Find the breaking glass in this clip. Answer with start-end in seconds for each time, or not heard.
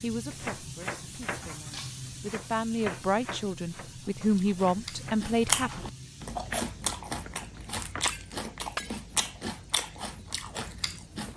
1.7-2.1, 8.1-9.1.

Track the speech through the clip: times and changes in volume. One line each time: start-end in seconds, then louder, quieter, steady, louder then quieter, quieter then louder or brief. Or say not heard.
0.0-5.8 louder.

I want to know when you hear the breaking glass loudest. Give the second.
9 s.